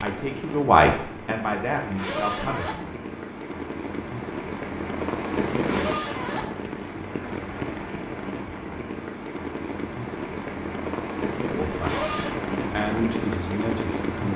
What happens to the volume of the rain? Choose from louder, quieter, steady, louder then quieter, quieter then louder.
louder.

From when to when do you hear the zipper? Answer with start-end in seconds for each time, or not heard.
1.9-3.0, 5.7-6.7, 11.8-12.4.